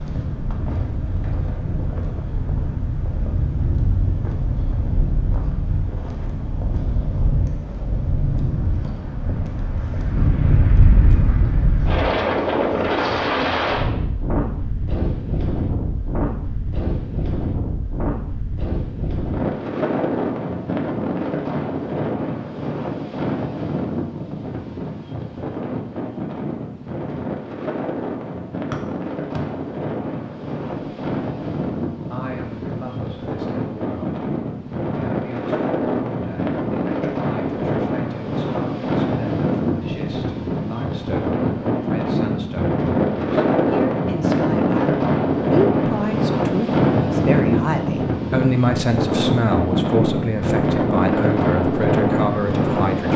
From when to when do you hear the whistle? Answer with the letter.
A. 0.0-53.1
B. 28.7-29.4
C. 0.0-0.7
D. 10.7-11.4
B.